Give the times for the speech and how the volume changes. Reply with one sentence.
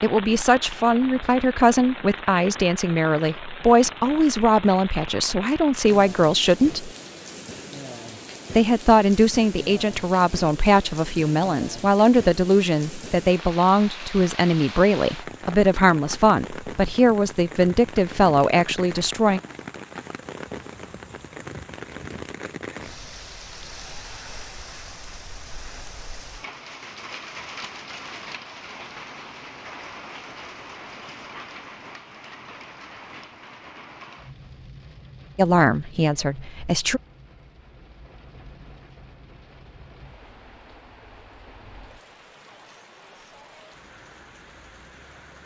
The speech can be heard from 0.0 to 6.9 s, at a steady volume; from 8.5 to 19.4 s, at a steady volume; and briefly from 35.4 to 37.0 s.